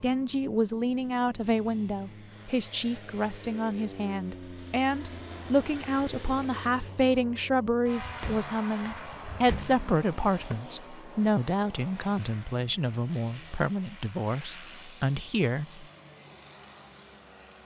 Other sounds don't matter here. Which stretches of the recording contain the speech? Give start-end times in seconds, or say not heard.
0.0-15.8.